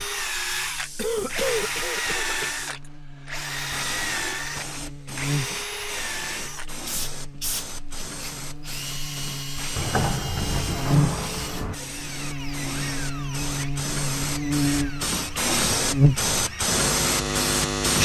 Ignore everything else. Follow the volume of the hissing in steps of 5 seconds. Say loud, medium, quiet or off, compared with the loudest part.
quiet, quiet, medium, loud.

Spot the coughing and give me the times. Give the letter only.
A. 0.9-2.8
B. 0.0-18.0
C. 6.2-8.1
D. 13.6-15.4
A.